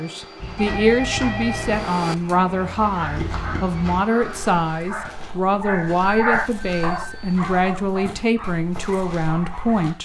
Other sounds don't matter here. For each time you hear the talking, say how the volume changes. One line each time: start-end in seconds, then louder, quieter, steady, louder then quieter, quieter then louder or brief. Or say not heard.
0.0-9.9 steady.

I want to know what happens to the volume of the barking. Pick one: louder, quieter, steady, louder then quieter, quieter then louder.
louder then quieter.